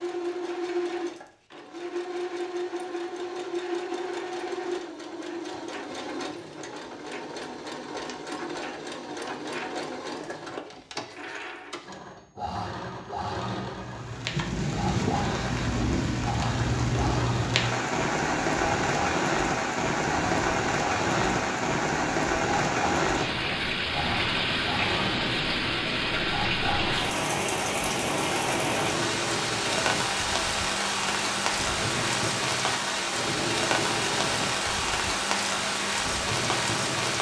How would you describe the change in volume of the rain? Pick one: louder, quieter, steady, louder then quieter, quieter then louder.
steady.